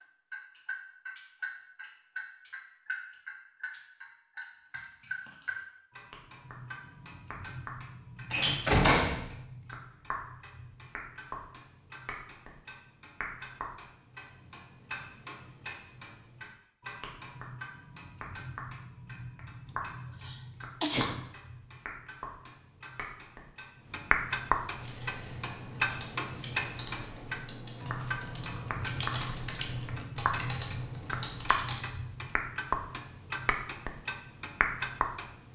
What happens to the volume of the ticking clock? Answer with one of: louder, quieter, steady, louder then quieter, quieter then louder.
louder.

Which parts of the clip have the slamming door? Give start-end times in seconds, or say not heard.
8.3-9.2.